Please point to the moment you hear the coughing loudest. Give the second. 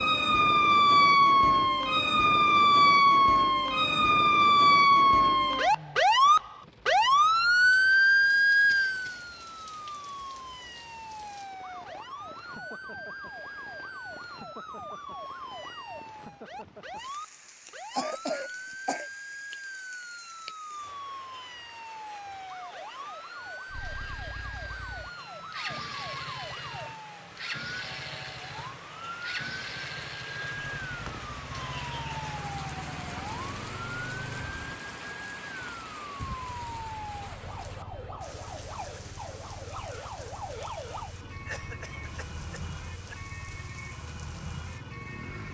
18 s.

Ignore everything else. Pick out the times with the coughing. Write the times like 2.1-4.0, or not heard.
8.7-9.2, 17.9-19.1, 41.5-43.1.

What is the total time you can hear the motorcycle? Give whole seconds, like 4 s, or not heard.
20 s.